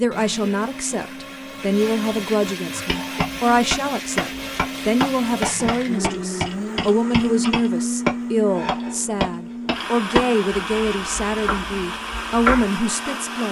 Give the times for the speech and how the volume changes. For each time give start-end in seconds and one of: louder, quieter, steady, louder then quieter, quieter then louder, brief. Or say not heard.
0.0-13.4 steady.